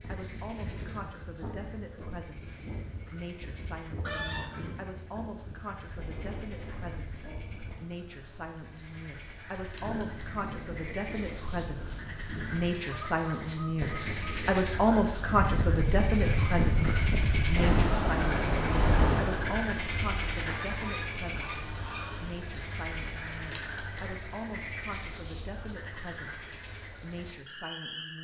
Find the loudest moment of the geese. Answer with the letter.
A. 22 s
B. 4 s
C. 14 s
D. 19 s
B.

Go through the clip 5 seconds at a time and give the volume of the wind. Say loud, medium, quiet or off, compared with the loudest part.
quiet, quiet, quiet, loud, off, off.